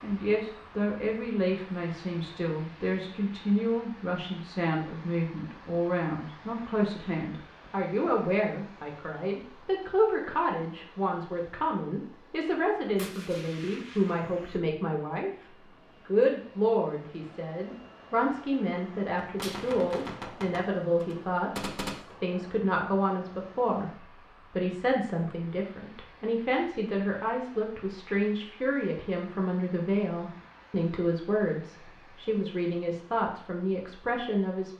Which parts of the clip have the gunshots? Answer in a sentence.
You can hear the gunshots from 12.9 to 14.6 s and from 19.2 to 22.1 s.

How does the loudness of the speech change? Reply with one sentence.
The volume of the speech stays about the same.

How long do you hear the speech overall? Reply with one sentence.
The speech can be heard for 33 seconds in total.